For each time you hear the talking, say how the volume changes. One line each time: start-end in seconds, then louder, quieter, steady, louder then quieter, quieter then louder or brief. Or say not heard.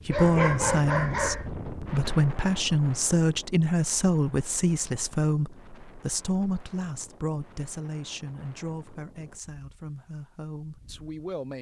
0.1-11.5 quieter.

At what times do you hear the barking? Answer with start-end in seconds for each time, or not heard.
0.1-1.5.